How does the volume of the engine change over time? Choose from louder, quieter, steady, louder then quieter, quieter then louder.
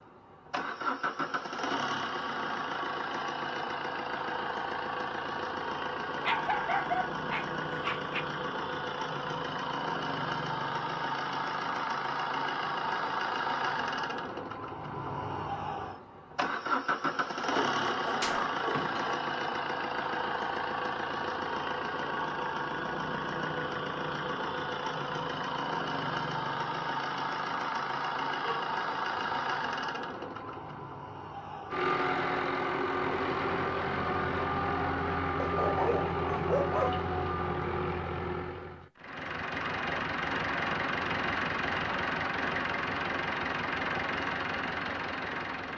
steady.